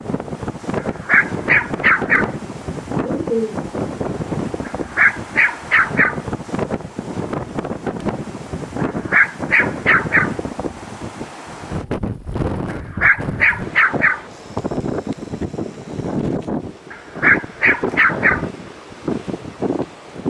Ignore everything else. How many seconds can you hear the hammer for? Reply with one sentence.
The hammer can't be heard in this clip.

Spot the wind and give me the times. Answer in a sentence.
The wind can be heard from 0.0 to 20.2 s.